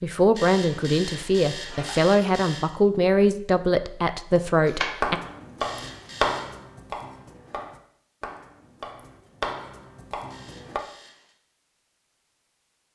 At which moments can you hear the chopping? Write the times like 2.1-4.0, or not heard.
4.7-10.8.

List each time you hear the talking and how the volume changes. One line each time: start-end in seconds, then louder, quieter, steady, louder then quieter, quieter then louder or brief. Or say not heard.
0.0-5.2 steady.